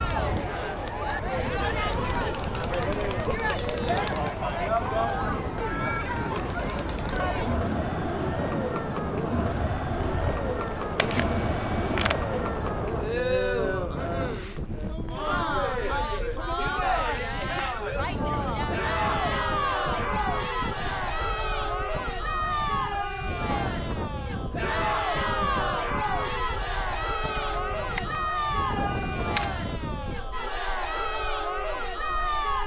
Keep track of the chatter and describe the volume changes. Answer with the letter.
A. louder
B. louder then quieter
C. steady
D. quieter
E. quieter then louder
C.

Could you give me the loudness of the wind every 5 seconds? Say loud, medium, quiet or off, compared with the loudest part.
loud, loud, loud, loud, loud, loud, quiet.